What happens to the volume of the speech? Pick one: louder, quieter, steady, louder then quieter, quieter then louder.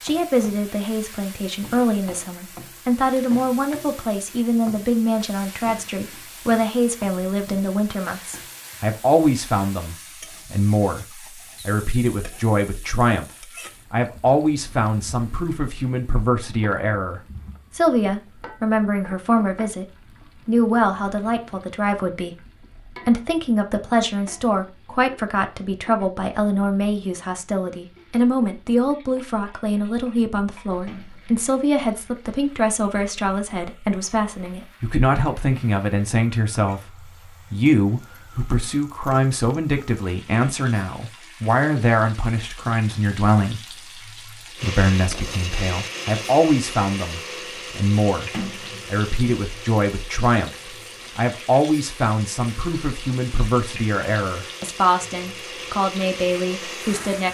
steady.